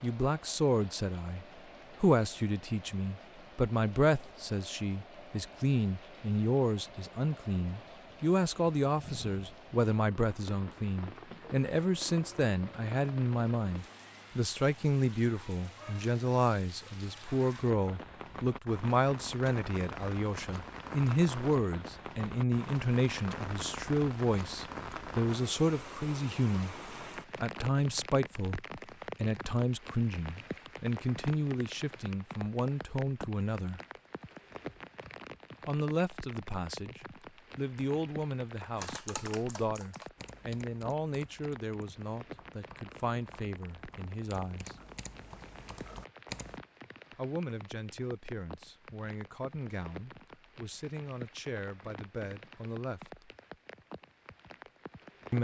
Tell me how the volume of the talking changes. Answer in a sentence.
The volume of the talking goes down.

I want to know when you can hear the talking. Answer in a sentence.
The talking can be heard from 0.0 to 33.8 s, from 35.6 to 44.8 s and from 47.1 to 53.3 s.